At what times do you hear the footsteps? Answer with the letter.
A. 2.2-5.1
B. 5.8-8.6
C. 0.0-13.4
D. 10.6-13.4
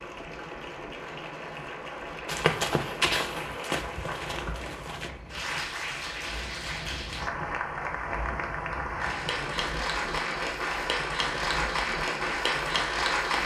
A.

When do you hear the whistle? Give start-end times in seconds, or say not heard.
not heard.